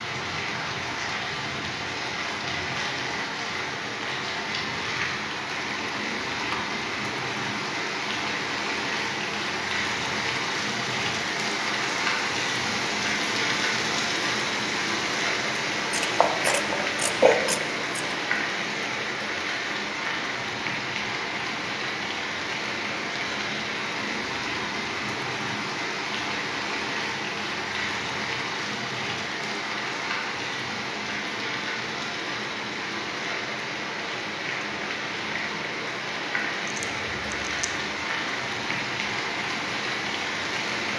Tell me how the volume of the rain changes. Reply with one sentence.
The volume of the rain stays about the same.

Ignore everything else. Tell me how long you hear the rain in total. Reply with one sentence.
You can hear the rain for 41 seconds altogether.